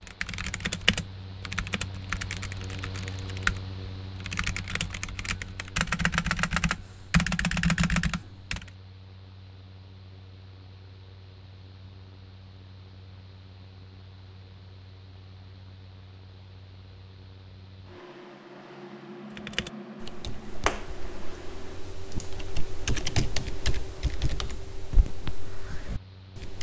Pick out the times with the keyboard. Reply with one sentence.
The keyboard can be heard from 0.0 to 8.7 s and from 19.4 to 26.5 s.